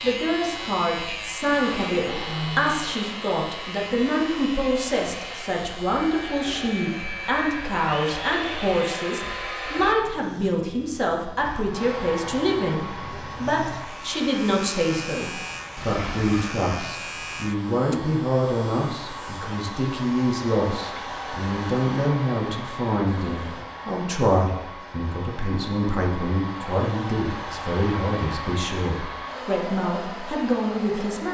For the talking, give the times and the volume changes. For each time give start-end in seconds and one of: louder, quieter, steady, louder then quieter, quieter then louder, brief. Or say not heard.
0.0-31.3 steady.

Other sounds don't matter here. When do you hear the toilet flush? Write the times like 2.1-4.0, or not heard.
1.4-3.2, 15.8-16.5, 23.1-23.7.